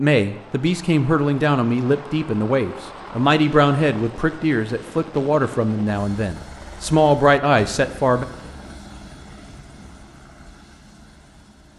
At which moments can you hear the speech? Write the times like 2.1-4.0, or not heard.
0.0-8.2.